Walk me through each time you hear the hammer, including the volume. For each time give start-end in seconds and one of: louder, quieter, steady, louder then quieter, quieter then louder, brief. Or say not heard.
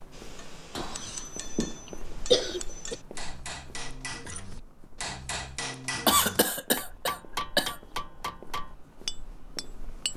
0.1-10.1 louder.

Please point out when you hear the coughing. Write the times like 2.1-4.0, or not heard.
0.8-3.0, 6.0-7.8.